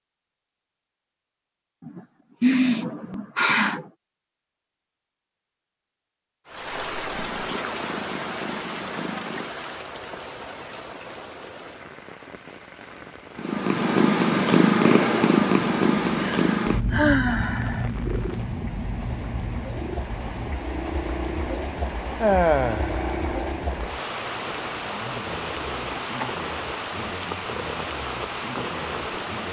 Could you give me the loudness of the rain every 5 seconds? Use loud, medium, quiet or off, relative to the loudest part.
off, loud, medium, medium, loud, loud.